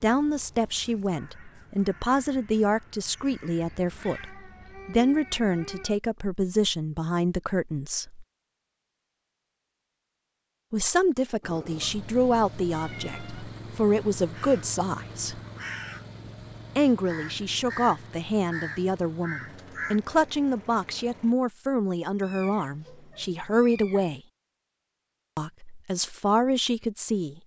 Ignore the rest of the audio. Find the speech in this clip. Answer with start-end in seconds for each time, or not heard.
0.0-8.2, 10.7-15.4, 16.8-24.2, 25.4-27.4.